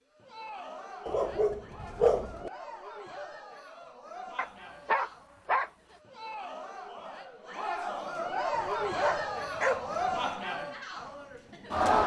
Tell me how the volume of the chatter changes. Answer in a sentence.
The loudness of the chatter goes up.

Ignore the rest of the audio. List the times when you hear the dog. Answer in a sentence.
The dog can be heard from 1.1 to 2.5 s, from 4.3 to 5.7 s and from 8.5 to 10.3 s.